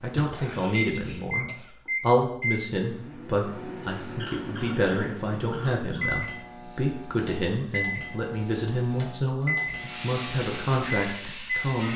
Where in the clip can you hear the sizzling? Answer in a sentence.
You can hear the sizzling from 9.6 to 11.9 s.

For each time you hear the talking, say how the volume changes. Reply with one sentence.
You can hear the talking from 0.0 to 11.9 s, at a steady volume.